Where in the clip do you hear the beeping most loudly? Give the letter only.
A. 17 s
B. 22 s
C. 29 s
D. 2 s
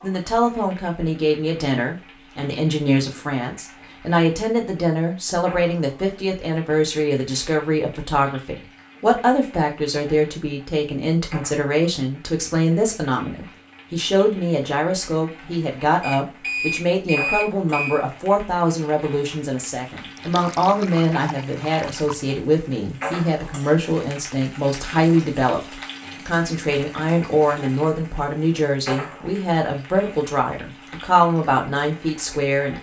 A.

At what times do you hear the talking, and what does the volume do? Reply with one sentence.
You can hear the talking from 0.0 to 32.7 s, at a steady volume.